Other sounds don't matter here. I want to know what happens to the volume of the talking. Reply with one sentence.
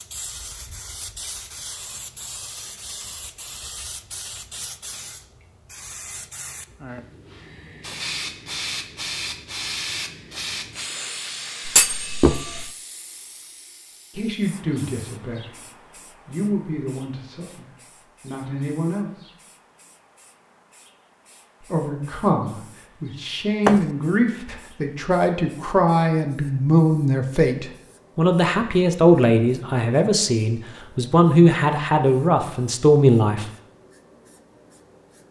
The volume of the talking goes up.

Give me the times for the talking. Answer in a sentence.
The talking can be heard from 14.2 to 19.3 s and from 21.6 to 33.5 s.